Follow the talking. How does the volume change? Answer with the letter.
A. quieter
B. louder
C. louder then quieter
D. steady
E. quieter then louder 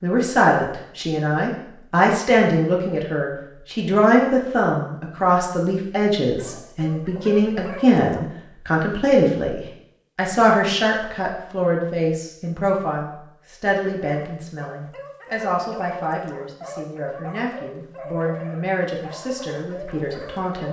A.